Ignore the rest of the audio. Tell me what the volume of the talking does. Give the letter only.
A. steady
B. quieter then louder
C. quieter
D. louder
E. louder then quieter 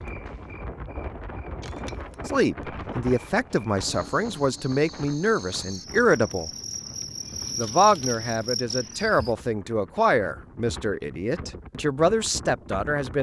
A.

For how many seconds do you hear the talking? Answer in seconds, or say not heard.
10 s.